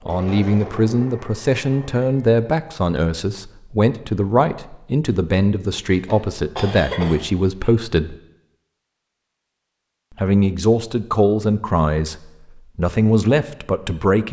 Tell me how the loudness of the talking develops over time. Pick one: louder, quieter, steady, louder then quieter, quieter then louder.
steady.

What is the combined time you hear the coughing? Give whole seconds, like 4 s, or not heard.
2 s.